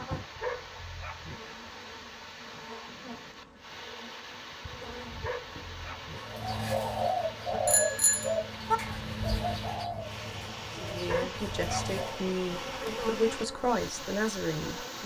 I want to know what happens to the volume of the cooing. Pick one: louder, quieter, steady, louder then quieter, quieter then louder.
quieter.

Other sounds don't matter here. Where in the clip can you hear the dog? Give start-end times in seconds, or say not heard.
0.4-1.4, 5.2-6.2, 11.1-12.0.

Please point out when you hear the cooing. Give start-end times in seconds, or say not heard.
6.2-12.2.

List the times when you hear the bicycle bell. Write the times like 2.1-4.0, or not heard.
7.7-8.8.